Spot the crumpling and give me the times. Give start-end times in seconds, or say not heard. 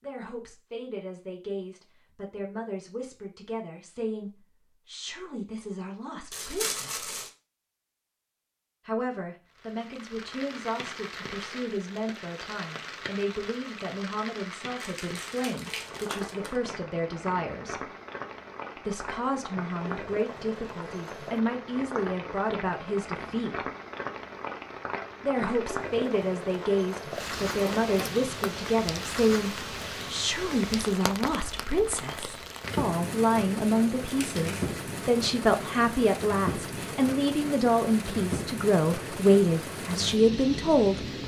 6.3-7.3, 14.8-16.6, 34.0-34.8.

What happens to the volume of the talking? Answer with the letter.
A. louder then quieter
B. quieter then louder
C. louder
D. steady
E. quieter
C.